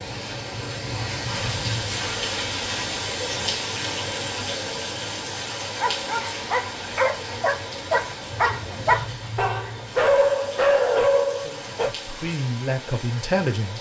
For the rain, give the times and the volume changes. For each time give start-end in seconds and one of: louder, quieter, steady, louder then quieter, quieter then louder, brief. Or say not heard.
0.0-13.7 quieter.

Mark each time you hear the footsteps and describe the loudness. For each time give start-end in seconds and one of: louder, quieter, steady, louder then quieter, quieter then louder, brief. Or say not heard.
not heard.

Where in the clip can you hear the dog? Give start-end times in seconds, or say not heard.
5.7-11.9.